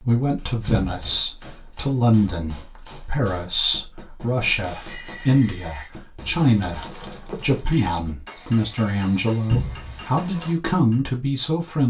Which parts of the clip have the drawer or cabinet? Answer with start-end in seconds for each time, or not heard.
0.7-1.2, 9.5-10.0.